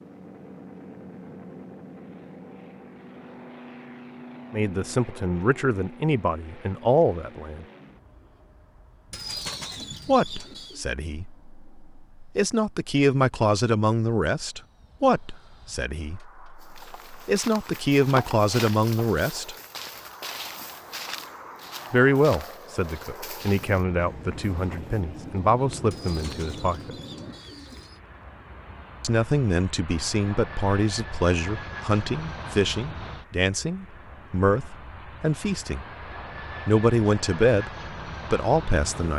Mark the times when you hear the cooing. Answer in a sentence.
You can hear the cooing from 9.1 to 10.8 s and from 25.9 to 28.0 s.